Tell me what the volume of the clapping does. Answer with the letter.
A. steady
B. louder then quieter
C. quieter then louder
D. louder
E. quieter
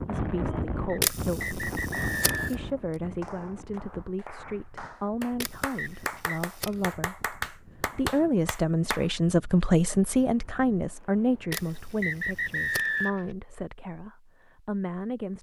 D.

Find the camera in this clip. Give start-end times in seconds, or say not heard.
1.0-2.5, 5.4-7.0, 11.5-13.1.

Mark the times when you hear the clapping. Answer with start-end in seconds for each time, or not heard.
3.0-9.1.